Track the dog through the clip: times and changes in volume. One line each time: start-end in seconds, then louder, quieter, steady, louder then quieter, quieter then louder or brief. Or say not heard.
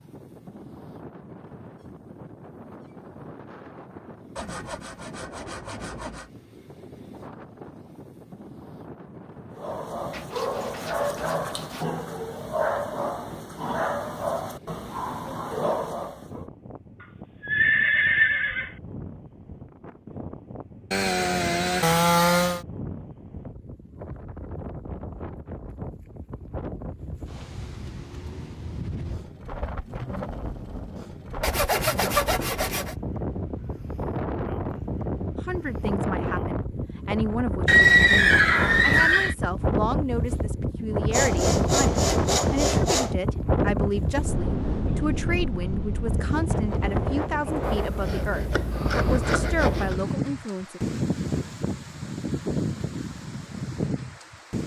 9.6-16.4 steady.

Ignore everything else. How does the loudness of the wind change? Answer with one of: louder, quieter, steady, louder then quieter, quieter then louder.
louder.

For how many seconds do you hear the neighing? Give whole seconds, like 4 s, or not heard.
3 s.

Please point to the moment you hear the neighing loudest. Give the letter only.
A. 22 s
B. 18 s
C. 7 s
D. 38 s
D.